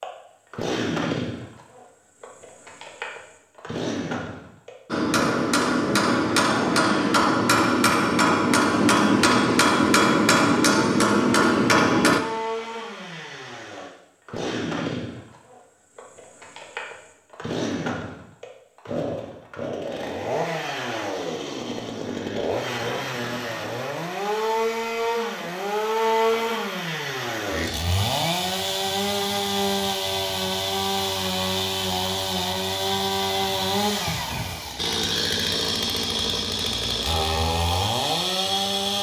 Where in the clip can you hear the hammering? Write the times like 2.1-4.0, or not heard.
4.8-12.2.